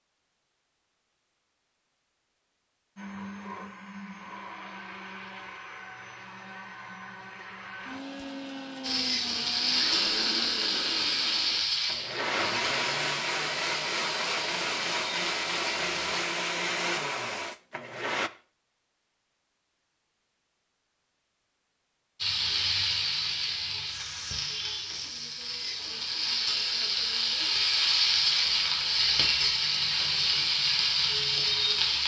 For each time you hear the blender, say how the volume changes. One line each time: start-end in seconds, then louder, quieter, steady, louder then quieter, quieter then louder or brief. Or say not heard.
3.0-18.3 louder.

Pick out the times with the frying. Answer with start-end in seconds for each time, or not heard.
8.8-16.2, 22.2-32.0.